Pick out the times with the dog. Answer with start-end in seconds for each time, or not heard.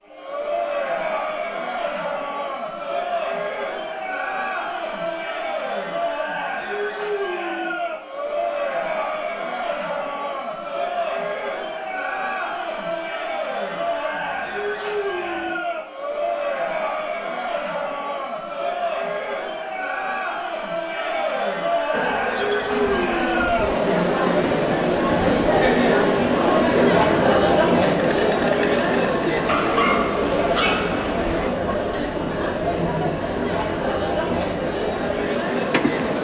13.8-15.6, 29.4-31.5.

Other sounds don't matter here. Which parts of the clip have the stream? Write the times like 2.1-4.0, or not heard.
not heard.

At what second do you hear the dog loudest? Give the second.
30 s.